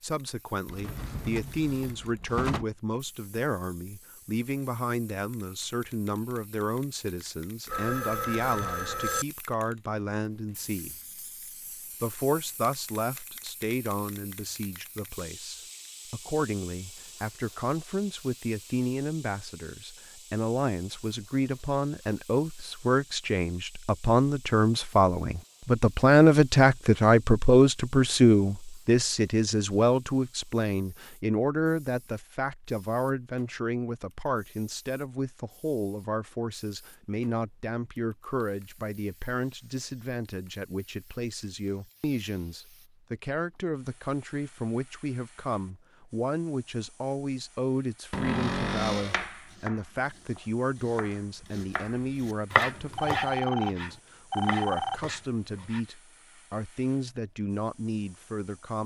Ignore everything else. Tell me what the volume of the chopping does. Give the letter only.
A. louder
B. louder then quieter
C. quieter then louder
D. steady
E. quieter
B.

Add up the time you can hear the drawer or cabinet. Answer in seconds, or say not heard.
3 s.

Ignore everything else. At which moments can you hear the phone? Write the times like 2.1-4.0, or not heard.
7.7-9.2, 53.0-55.0.